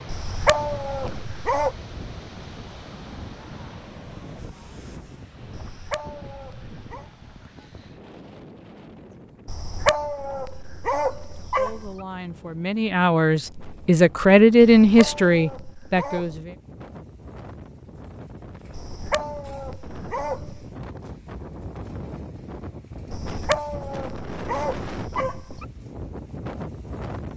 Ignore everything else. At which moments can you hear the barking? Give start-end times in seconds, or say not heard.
0.1-1.7, 5.5-7.0, 9.4-11.9, 14.6-16.4, 18.7-20.6, 23.1-25.6.